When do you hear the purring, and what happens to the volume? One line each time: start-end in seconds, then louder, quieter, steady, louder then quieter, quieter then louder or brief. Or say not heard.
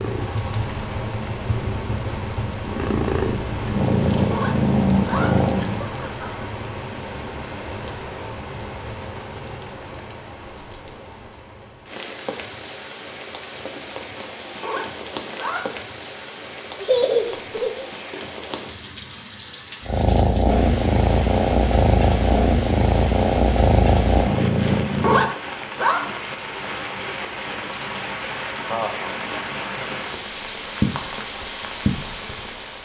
0.0-5.8 louder
19.9-25.3 steady.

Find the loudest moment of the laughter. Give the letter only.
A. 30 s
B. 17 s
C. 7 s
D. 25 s
B.